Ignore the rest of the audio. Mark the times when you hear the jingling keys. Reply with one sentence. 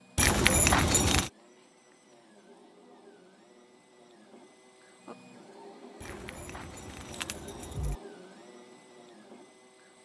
You can hear the jingling keys from 0.1 to 1.3 s and from 6.0 to 8.0 s.